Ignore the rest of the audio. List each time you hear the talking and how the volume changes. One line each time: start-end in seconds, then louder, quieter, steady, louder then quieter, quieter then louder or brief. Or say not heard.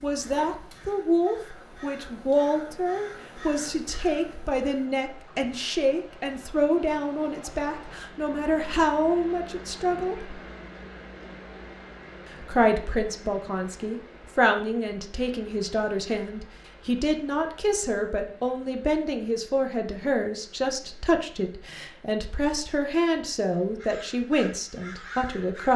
0.0-10.3 steady
12.3-25.7 steady.